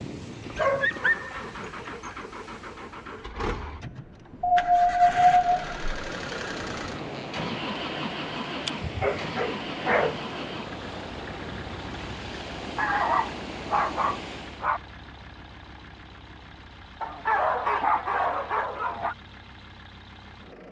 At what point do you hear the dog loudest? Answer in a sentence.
The loudest moment of the dog is at 5 seconds.